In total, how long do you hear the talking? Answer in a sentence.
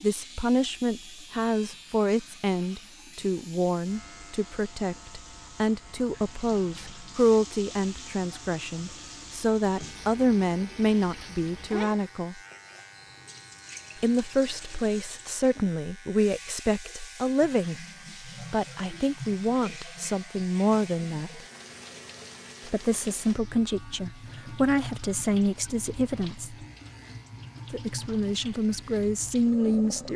The talking can be heard for 26 seconds in total.